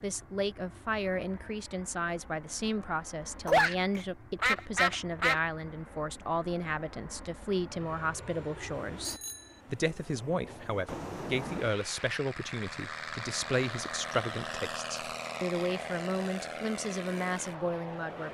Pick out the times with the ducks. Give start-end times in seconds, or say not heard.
3.5-5.4.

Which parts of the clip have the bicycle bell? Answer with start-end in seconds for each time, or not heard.
9.0-9.6.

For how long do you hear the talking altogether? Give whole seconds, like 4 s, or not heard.
18 s.